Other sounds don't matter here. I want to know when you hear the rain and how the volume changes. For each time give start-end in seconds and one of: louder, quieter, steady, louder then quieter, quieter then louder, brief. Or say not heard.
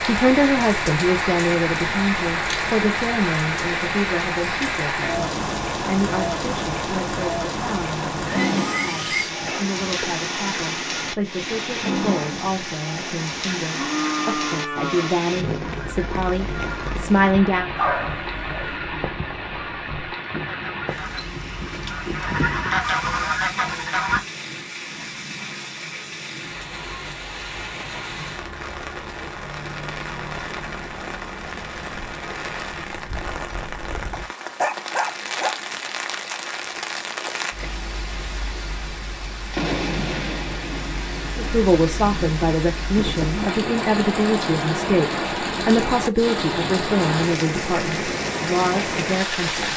0.0-49.7 quieter then louder.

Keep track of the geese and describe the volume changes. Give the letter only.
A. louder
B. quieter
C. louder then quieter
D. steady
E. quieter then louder
A.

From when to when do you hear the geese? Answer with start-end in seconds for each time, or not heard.
15.6-24.2.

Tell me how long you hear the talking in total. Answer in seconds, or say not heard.
26 s.